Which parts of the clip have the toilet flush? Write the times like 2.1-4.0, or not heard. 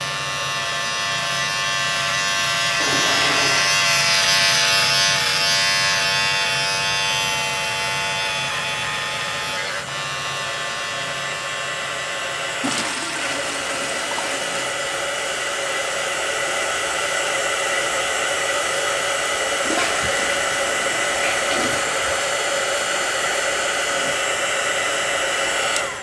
2.8-3.9, 12.6-14.8, 19.6-22.2.